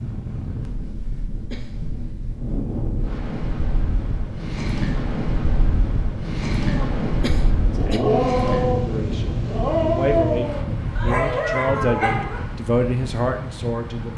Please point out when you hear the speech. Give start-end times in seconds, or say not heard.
7.6-14.1.